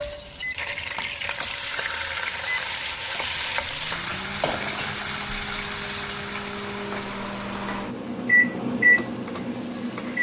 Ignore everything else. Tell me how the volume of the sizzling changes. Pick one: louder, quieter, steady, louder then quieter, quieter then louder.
quieter.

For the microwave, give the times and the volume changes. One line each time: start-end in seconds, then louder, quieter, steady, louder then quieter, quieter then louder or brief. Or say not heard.
0.1-10.1 louder.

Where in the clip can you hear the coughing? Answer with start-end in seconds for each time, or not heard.
not heard.